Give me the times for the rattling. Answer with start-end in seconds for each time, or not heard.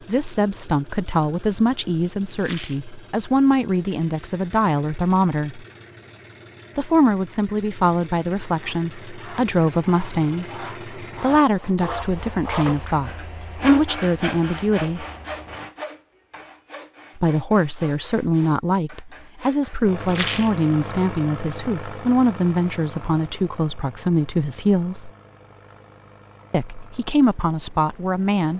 2.4-2.9, 12.4-12.9, 20.1-20.6.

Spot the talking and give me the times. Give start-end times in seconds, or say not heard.
0.1-5.7, 6.8-15.1, 17.1-25.1, 26.5-28.5.